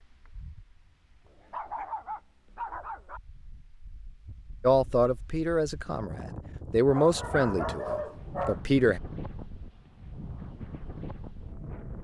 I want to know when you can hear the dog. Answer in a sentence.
The dog can be heard from 1.2 to 3.2 s and from 6.9 to 8.6 s.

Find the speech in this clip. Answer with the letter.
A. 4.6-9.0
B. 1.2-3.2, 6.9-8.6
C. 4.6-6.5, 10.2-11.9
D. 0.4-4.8
A.